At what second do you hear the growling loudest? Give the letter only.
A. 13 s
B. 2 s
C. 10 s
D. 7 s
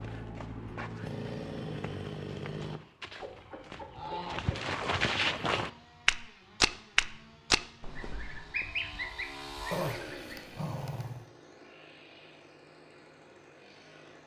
C.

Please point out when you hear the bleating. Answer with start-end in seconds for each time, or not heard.
not heard.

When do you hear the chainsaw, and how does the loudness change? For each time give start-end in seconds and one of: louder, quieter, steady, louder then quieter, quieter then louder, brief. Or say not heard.
0.0-2.8 brief
5.5-14.2 louder then quieter.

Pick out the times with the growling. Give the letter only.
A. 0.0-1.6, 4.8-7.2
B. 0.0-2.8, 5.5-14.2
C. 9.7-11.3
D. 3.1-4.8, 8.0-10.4
C.